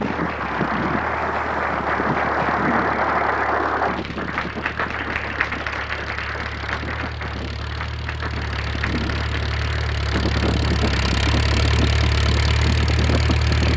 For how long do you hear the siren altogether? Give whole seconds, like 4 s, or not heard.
not heard.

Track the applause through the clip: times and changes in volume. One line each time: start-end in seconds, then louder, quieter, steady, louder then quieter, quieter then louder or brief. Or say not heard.
0.0-13.7 quieter.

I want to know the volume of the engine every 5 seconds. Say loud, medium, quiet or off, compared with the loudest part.
quiet, medium, loud.